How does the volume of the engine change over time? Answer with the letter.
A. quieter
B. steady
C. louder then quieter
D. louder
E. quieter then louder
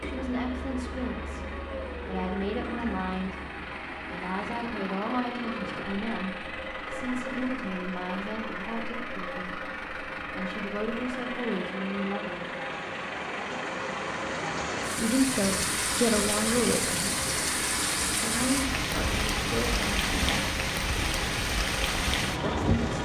B.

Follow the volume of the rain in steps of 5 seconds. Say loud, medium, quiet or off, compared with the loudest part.
quiet, quiet, medium, loud, loud.